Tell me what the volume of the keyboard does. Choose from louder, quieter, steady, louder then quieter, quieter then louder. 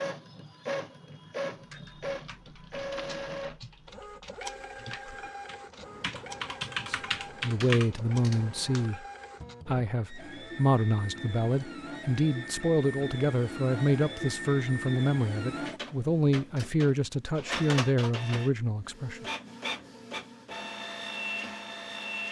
louder.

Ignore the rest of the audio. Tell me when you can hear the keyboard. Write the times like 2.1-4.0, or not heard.
1.6-8.9.